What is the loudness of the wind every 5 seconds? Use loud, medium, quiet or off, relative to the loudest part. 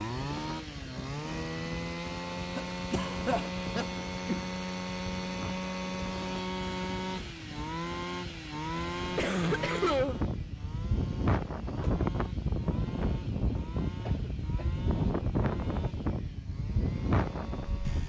quiet, quiet, loud, loud.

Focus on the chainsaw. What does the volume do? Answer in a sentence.
The volume of the chainsaw goes down.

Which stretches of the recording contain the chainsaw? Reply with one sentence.
You can hear the chainsaw from 0.0 to 18.0 s.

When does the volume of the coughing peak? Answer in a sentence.
The volume of the coughing peaks at 10 seconds.